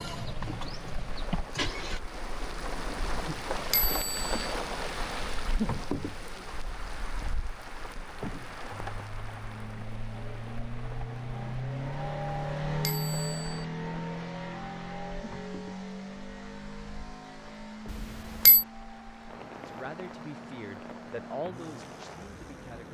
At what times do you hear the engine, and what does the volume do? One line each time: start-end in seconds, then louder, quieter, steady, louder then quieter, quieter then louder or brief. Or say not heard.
0.0-2.0 brief
8.7-22.8 louder then quieter.